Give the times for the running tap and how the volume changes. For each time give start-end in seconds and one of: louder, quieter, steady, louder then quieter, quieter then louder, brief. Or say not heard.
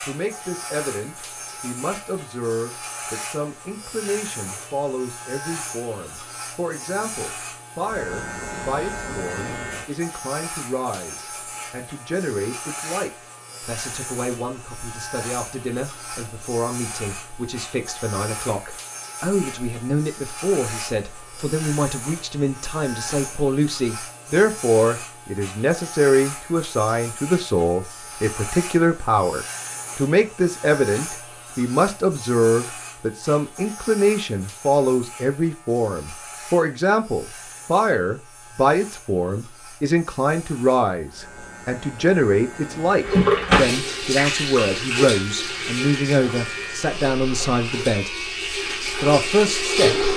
43.0-50.1 quieter then louder.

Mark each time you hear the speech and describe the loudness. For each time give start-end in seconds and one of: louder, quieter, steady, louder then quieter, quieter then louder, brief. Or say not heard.
0.0-48.1 louder
49.0-50.1 brief.